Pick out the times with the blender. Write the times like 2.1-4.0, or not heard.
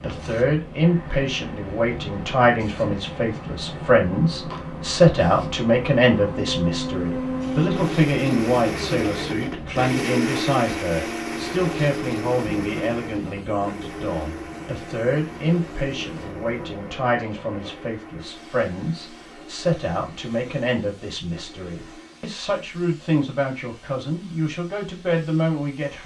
0.0-22.3.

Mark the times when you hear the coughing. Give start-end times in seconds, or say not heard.
not heard.